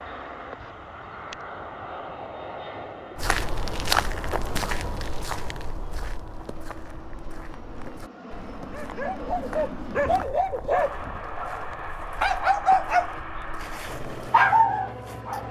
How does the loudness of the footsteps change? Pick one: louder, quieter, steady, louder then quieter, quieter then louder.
quieter.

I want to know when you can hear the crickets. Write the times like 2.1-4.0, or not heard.
not heard.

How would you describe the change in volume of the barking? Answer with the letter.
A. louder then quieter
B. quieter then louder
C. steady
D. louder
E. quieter
D.